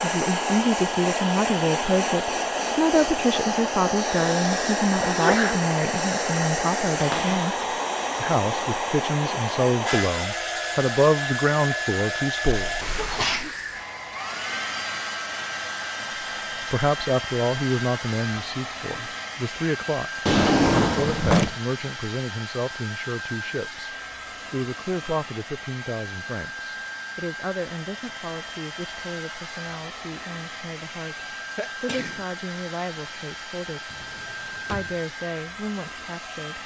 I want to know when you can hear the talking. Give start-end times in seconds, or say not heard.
0.0-12.7, 16.7-36.6.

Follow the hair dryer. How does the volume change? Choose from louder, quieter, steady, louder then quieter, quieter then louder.
quieter.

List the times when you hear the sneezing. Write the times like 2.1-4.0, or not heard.
5.0-5.7, 12.7-13.5, 31.6-32.2.